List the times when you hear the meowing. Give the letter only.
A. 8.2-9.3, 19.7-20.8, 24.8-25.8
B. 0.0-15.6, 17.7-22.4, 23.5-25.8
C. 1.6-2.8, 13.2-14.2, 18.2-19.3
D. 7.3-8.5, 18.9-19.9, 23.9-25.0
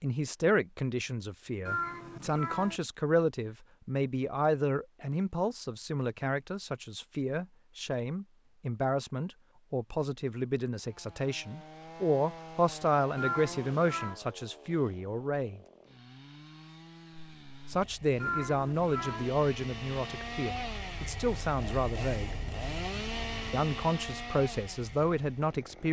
C.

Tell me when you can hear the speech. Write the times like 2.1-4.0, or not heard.
0.0-15.6, 17.7-22.4, 23.5-25.8.